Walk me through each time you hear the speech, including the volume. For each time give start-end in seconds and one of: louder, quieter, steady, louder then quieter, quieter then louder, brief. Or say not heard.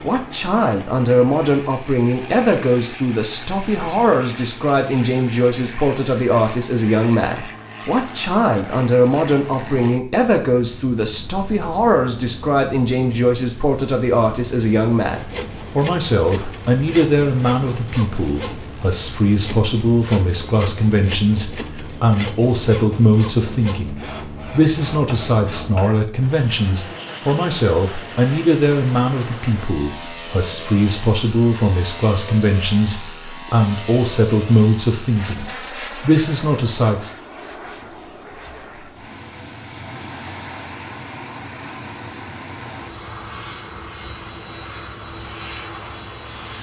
0.0-37.1 steady.